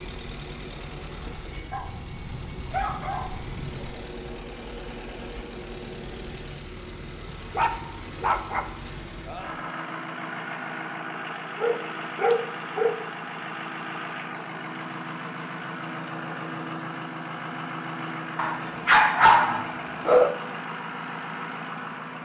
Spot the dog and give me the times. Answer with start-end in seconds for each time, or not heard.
1.7-4.0, 7.5-8.9, 11.6-12.9, 18.4-20.3.